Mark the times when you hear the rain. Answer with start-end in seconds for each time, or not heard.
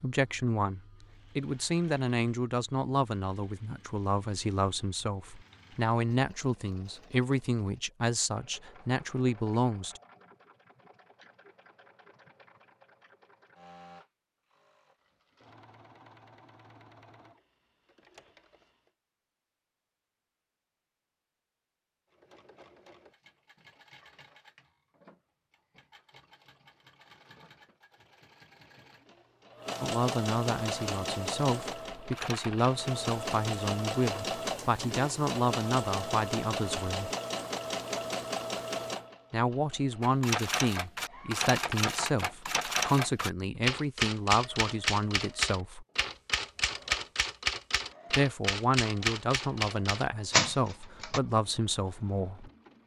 not heard.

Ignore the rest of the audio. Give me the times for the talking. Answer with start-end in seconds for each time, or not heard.
0.0-10.0, 29.8-37.1, 39.3-45.9, 48.1-52.5.